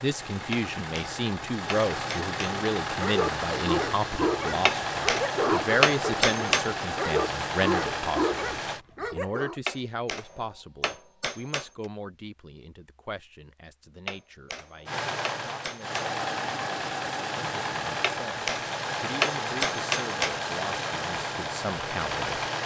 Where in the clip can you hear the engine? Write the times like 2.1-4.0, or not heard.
0.0-8.8, 14.8-22.6.